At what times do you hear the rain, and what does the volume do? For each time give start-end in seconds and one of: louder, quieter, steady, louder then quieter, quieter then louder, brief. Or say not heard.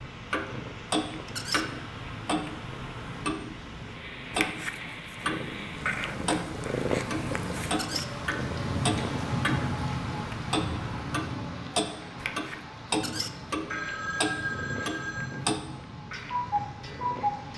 0.0-17.5 louder then quieter.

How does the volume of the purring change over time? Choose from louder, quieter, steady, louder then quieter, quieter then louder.
louder then quieter.